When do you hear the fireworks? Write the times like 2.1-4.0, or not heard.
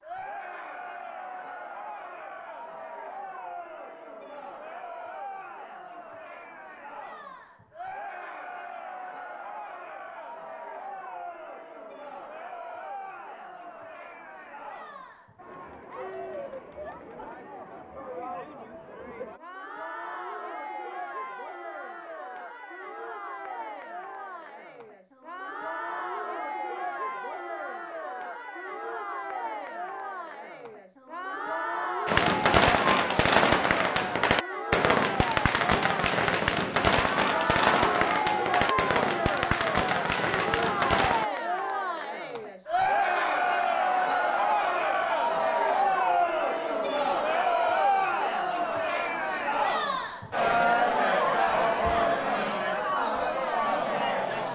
32.0-41.2.